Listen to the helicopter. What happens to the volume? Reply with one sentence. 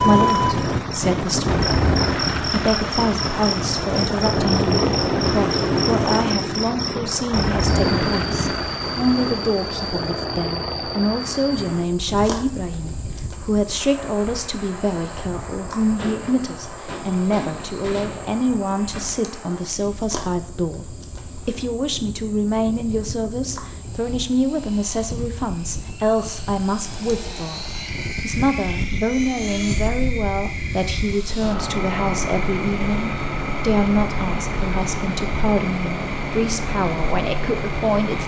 The volume of the helicopter goes down, then up.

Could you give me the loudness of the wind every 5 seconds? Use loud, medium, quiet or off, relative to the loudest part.
loud, loud, quiet, quiet, quiet, off, off, off.